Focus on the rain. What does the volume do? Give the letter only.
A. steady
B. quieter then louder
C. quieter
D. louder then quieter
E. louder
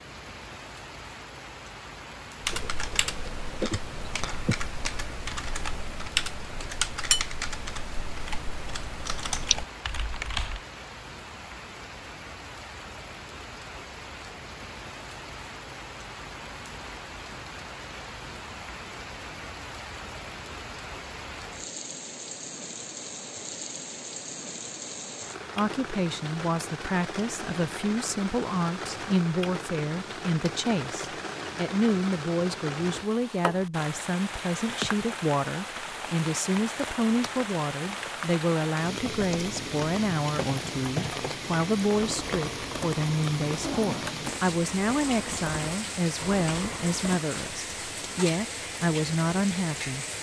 E.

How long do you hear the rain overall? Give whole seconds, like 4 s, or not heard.
50 s.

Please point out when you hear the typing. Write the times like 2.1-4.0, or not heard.
2.4-10.6, 39.0-47.2.